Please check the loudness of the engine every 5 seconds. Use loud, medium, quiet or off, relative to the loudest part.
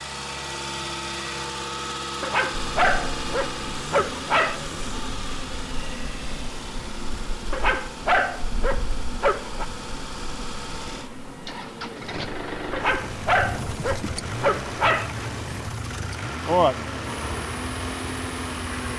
loud, medium, loud, loud.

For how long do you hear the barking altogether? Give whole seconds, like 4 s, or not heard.
7 s.